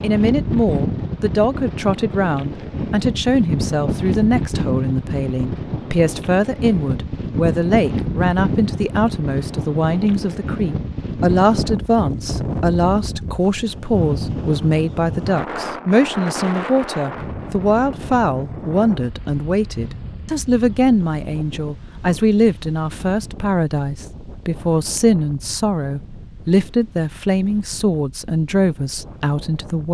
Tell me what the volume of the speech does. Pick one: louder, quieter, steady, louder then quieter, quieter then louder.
steady.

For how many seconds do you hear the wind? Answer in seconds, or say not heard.
30 s.